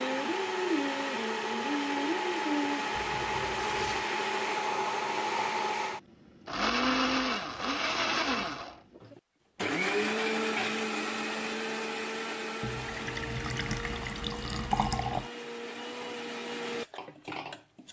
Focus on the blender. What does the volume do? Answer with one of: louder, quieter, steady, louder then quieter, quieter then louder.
quieter.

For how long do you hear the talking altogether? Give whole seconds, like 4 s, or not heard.
not heard.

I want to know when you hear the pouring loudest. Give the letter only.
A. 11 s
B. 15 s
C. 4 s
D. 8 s
B.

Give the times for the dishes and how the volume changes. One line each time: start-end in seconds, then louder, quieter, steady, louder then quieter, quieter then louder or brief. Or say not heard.
not heard.